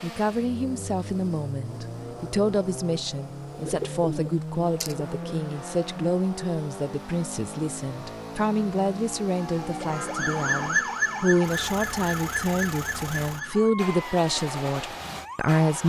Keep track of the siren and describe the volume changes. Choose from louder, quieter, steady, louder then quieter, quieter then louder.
quieter.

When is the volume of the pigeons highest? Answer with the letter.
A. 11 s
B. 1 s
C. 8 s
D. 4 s
D.